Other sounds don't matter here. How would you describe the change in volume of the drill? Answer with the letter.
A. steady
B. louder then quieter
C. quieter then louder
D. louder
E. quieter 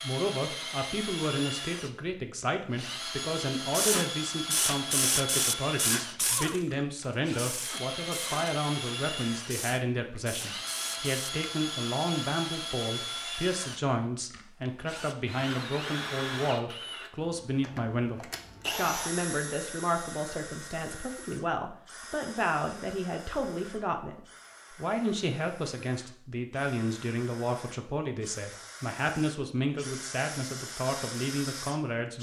E.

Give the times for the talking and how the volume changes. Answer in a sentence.
You can hear the talking from 0.0 to 32.1 s, at a steady volume.